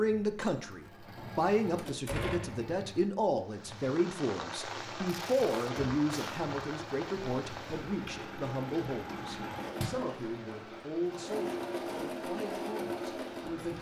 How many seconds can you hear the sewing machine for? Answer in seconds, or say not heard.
14 s.